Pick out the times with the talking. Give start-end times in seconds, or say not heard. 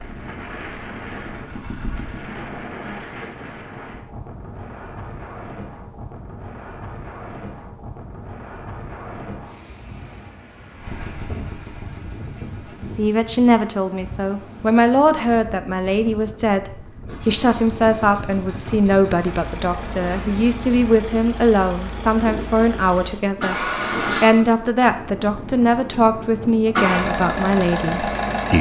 12.8-28.5.